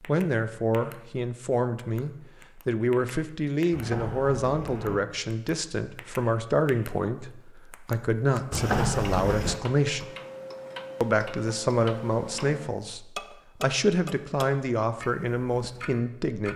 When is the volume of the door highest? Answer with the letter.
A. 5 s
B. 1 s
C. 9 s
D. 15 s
C.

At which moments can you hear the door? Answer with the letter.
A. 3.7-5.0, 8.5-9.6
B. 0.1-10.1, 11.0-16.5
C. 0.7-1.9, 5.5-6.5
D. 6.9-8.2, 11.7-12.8
A.